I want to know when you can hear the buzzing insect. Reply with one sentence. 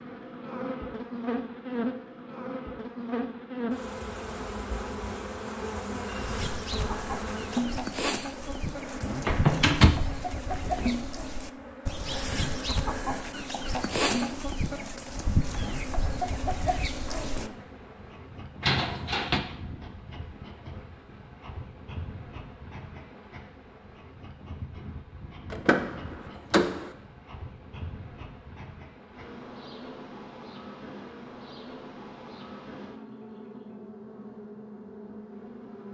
You can hear the buzzing insect from 0.0 to 35.9 s.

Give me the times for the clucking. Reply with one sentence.
The clucking can be heard from 6.2 to 17.5 s.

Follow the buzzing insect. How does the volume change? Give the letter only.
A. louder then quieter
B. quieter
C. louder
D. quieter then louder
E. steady
B.